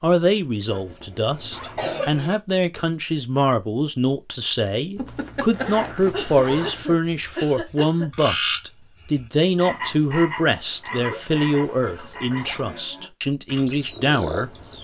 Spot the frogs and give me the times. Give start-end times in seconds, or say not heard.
7.0-14.7.